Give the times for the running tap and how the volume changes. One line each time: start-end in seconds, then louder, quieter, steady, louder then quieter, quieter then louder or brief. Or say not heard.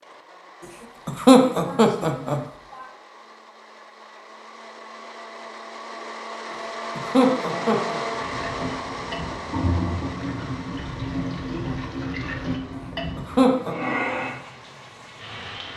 8.1-15.7 steady.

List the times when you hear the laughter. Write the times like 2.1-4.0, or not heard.
1.1-2.4, 7.0-8.0, 13.2-13.8.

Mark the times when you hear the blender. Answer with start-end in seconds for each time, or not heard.
0.0-15.7.